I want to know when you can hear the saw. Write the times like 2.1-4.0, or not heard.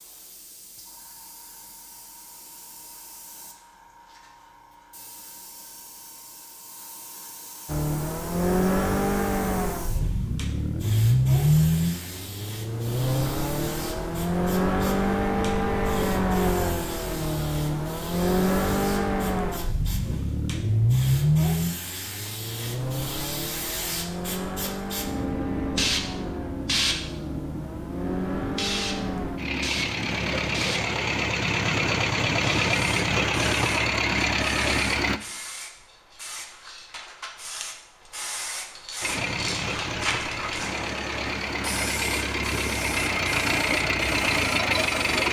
not heard.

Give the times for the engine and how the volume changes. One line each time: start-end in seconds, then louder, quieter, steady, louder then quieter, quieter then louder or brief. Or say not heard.
7.7-35.2 quieter then louder
39.0-45.2 louder.